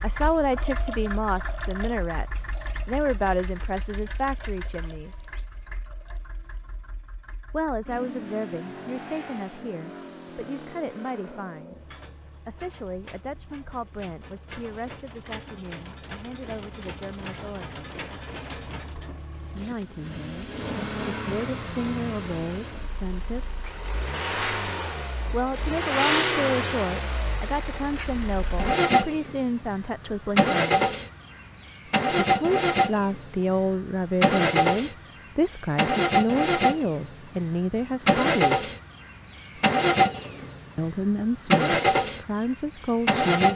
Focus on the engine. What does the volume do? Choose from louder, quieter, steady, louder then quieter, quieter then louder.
louder.